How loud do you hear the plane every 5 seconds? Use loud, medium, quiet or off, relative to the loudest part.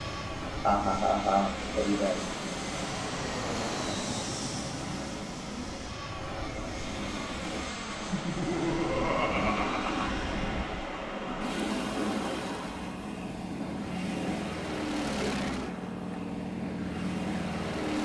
loud, medium, medium, loud.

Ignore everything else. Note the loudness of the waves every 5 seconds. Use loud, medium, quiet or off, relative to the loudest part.
medium, loud, loud, medium.